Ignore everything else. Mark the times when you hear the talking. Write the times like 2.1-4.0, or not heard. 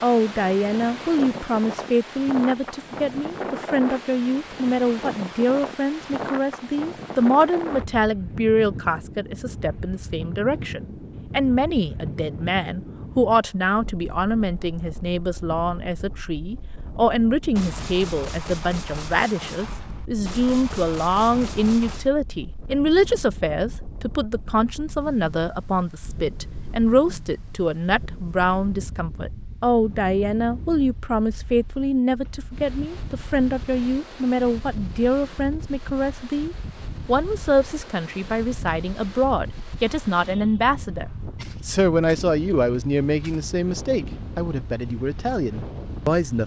0.0-41.0, 41.6-46.4.